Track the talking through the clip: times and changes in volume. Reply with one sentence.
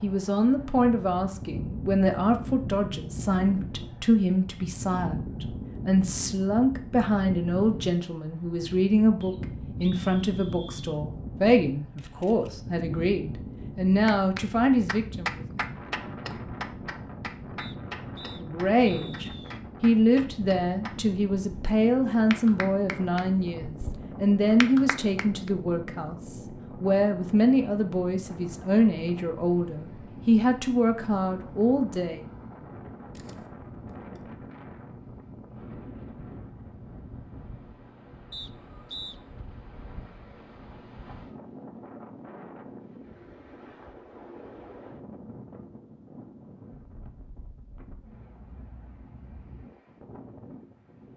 The talking can be heard from 0.0 to 15.4 s, at a steady volume; and from 18.2 to 32.2 s, at a steady volume.